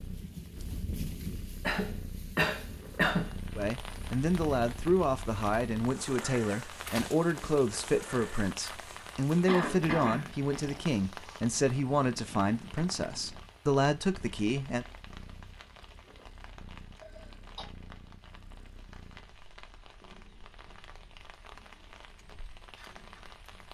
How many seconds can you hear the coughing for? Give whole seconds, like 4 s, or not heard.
3 s.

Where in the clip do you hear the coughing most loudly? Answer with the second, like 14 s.
3 s.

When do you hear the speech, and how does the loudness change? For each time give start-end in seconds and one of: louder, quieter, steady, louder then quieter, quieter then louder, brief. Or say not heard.
3.5-14.8 steady.